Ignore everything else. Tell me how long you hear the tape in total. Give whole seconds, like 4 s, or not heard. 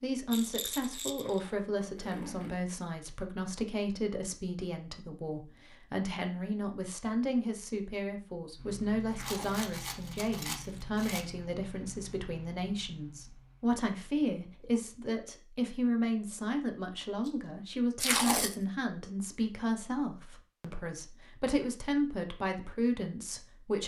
3 s.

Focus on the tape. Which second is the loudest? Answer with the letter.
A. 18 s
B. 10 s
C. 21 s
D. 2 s
A.